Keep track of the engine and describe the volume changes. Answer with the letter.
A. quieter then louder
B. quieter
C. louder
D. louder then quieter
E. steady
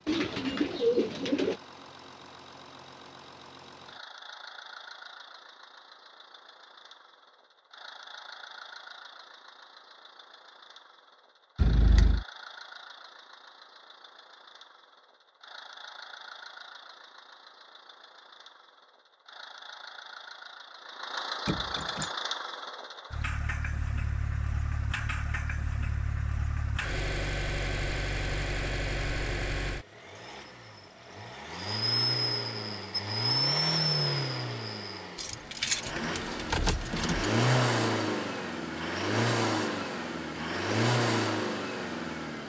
C.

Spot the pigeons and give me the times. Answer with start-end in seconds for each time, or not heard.
0.1-1.6.